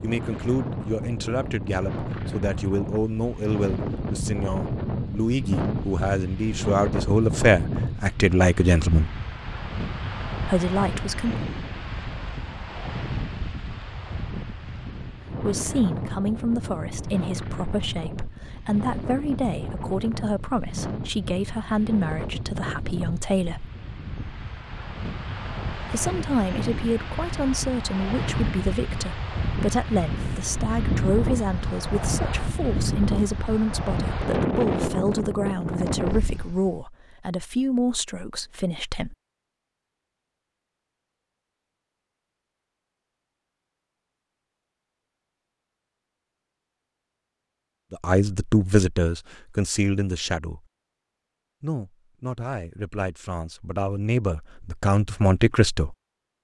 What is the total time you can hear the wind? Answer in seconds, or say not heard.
37 s.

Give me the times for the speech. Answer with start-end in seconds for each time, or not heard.
0.0-9.1, 10.4-11.4, 15.3-23.7, 25.8-39.1, 47.9-50.6, 51.6-56.3.